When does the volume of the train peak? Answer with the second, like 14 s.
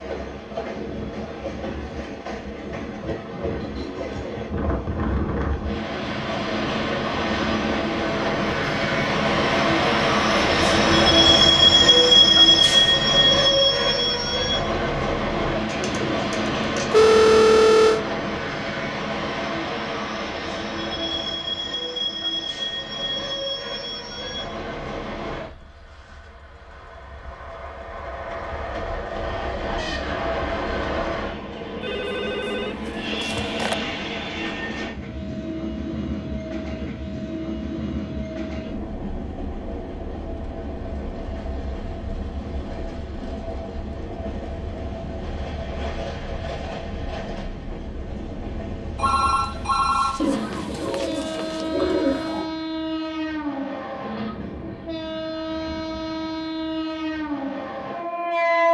12 s.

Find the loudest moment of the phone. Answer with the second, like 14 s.
17 s.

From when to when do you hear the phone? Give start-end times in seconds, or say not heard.
16.9-18.0, 31.8-33.8, 49.0-51.6.